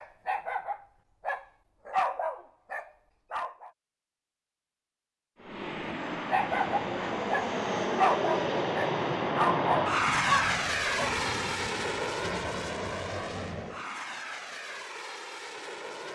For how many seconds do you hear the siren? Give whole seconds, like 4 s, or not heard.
not heard.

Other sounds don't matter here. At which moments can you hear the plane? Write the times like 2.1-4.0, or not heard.
5.3-16.1.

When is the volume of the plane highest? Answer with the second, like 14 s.
10 s.